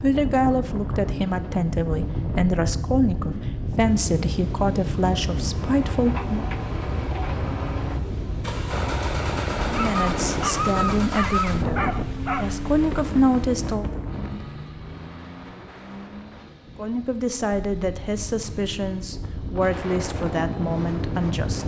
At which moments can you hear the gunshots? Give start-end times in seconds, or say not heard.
8.7-10.5.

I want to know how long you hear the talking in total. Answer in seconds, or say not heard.
16 s.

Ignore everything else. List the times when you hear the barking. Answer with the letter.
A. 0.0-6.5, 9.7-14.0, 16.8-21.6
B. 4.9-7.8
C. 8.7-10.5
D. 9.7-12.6
D.